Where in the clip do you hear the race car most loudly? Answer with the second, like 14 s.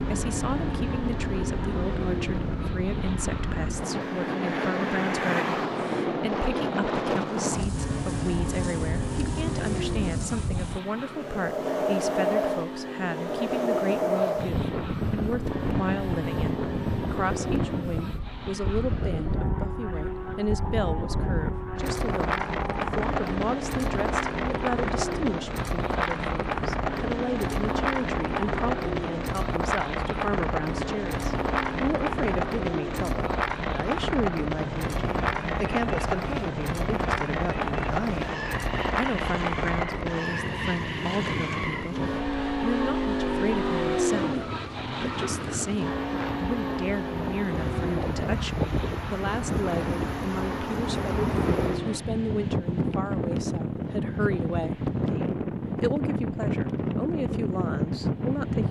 44 s.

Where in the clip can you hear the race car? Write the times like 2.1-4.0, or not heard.
0.0-52.0.